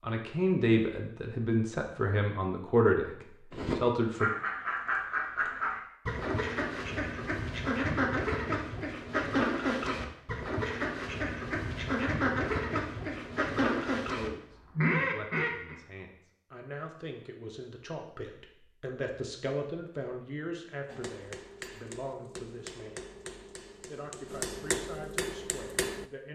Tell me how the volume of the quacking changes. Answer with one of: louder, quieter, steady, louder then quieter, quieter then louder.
steady.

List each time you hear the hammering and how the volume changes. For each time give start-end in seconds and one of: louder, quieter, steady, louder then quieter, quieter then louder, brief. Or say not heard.
20.9-26.1 louder.